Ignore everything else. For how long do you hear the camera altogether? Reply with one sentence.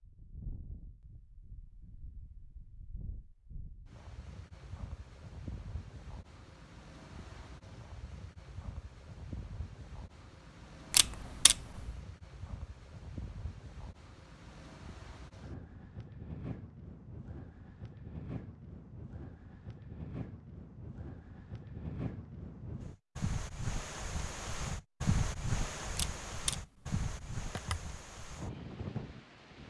The camera can be heard for 3 seconds in total.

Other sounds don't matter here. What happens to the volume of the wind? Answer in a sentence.
The volume of the wind goes up.